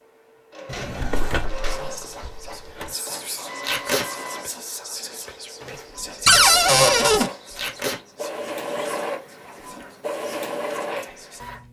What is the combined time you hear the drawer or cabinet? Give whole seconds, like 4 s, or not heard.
3 s.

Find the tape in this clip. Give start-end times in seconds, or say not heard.
3.6-4.0, 7.5-8.0.